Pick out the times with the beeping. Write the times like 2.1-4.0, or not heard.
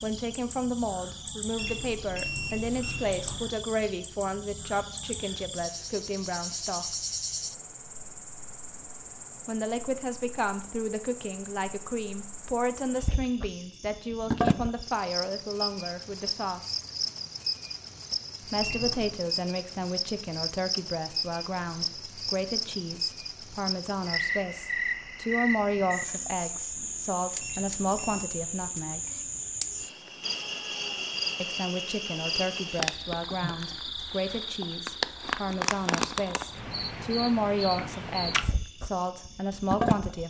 1.6-3.5, 18.6-19.1, 27.4-28.2.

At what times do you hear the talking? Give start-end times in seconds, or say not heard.
0.0-6.8, 9.4-16.8, 18.4-29.0, 31.4-40.2.